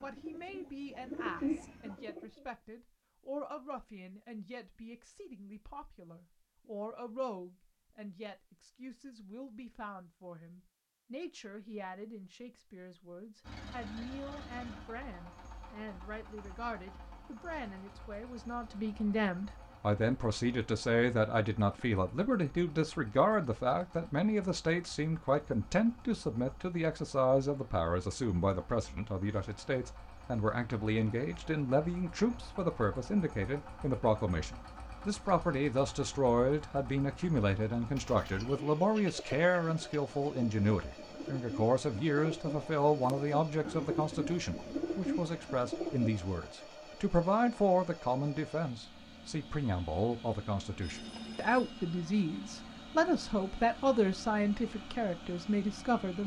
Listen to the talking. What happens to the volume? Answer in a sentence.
The volume of the talking goes up.